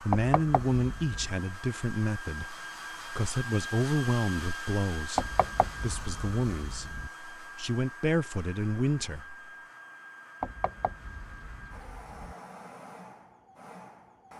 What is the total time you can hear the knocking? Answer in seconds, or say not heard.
5 s.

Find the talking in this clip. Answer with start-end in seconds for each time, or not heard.
0.0-9.3.